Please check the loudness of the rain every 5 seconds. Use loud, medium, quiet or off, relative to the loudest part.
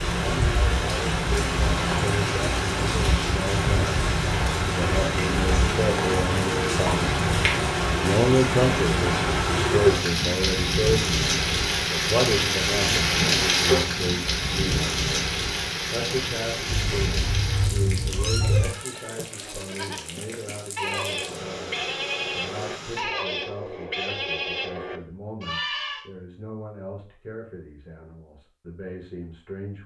loud, loud, loud, medium, quiet, off.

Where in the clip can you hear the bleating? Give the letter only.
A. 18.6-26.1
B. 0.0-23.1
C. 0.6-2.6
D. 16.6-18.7
A.